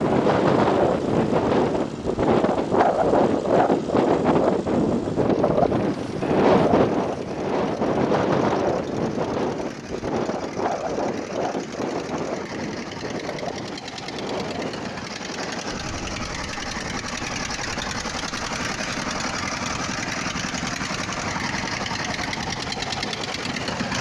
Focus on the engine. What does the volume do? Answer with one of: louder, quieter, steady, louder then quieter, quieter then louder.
louder.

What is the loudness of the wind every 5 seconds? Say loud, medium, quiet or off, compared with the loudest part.
loud, loud, medium, quiet, quiet.